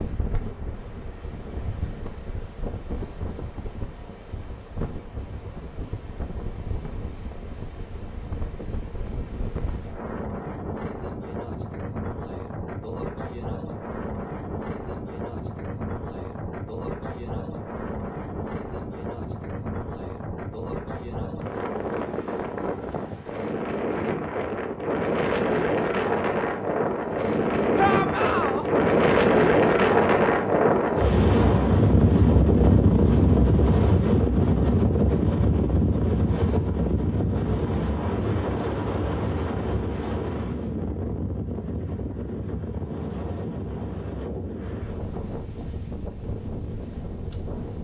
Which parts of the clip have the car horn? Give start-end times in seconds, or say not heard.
not heard.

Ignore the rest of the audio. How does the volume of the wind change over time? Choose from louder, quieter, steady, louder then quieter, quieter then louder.
louder then quieter.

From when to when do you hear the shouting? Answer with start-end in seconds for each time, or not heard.
27.8-28.6.